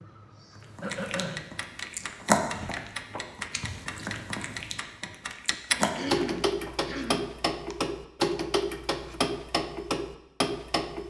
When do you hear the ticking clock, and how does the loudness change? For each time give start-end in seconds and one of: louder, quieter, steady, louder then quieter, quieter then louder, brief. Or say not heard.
0.0-11.0 louder.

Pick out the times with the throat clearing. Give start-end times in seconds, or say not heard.
0.8-1.4, 5.8-7.8.